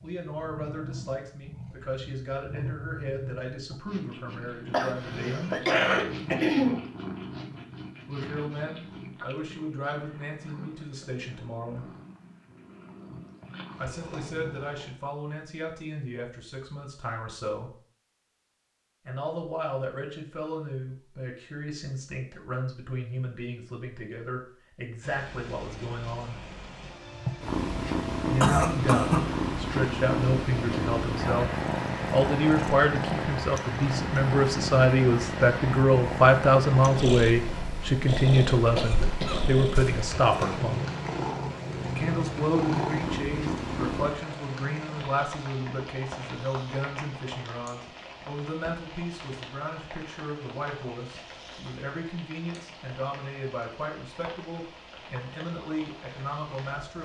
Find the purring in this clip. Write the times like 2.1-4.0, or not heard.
0.0-14.9, 27.1-44.2.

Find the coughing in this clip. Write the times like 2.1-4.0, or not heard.
4.7-6.8, 28.4-29.2, 38.8-40.1.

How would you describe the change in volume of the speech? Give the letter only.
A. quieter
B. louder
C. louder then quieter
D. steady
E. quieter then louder
C.